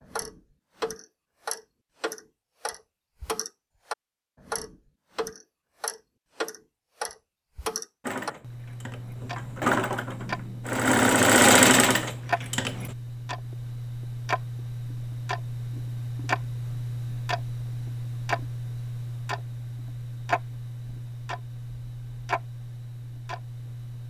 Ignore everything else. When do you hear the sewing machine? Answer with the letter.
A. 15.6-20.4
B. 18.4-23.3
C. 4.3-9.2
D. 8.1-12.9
D.